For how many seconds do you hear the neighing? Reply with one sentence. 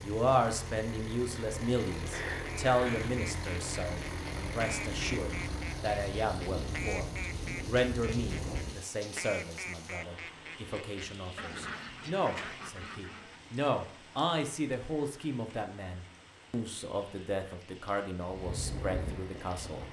You can hear the neighing for 2 seconds altogether.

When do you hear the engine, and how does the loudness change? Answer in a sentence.
You can hear the engine from 0.0 to 8.8 s, at a steady volume; and briefly from 18.2 to 19.8 s.